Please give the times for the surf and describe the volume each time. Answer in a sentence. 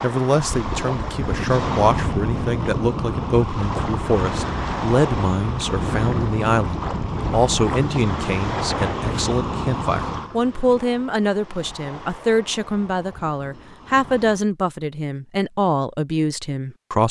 The surf can be heard from 0.0 to 14.4 s, getting quieter.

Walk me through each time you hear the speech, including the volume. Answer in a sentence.
You can hear the speech from 0.0 to 17.0 s, at a steady volume.